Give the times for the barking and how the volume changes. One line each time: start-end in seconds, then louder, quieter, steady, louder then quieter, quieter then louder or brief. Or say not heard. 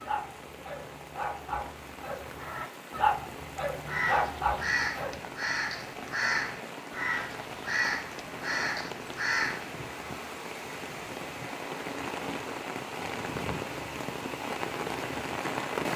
0.0-5.2 louder.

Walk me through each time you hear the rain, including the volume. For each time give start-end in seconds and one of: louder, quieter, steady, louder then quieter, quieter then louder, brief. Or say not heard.
0.0-15.9 louder.